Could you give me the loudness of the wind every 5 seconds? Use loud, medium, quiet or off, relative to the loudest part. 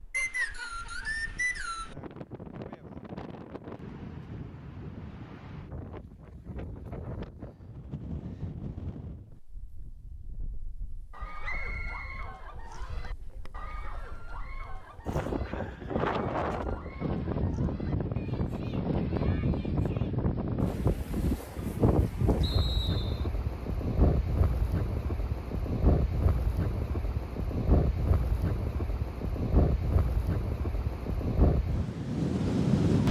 quiet, quiet, quiet, loud, loud, loud, loud.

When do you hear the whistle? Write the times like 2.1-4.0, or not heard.
0.1-1.9, 11.4-13.0, 22.4-23.3.